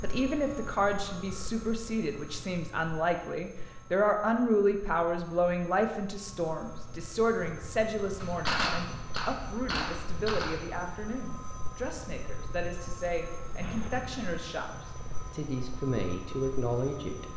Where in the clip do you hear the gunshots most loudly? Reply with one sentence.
The volume of the gunshots peaks at 9 seconds.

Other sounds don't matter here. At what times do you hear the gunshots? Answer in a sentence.
The gunshots can be heard from 8.2 to 10.8 s.